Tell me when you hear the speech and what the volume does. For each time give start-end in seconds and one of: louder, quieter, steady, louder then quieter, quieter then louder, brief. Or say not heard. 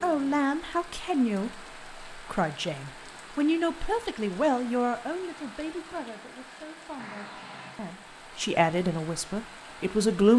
0.0-10.3 quieter then louder.